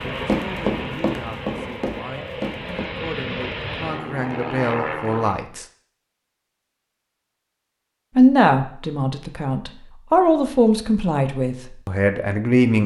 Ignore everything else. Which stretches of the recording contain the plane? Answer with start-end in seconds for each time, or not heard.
0.0-5.4.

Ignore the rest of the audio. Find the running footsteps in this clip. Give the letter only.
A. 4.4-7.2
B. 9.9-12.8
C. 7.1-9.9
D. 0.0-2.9
D.